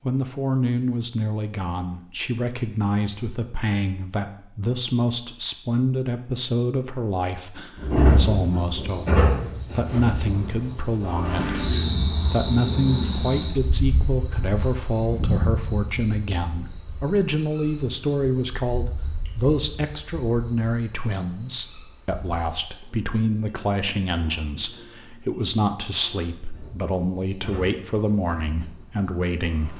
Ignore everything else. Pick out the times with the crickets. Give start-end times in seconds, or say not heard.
7.8-29.7.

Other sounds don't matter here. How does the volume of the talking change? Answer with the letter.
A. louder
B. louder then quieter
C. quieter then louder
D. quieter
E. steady
E.